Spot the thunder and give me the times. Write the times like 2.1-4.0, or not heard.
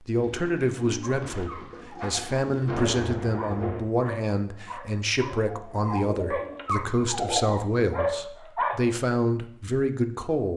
2.5-3.8.